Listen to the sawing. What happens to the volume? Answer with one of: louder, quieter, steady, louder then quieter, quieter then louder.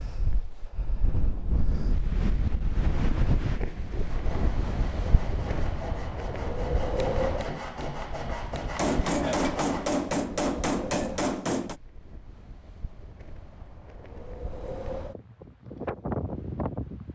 louder.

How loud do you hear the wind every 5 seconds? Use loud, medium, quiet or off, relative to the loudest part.
loud, loud, medium, loud.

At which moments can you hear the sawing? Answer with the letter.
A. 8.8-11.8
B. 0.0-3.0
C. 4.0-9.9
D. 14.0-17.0
C.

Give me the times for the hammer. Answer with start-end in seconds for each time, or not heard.
8.8-11.8.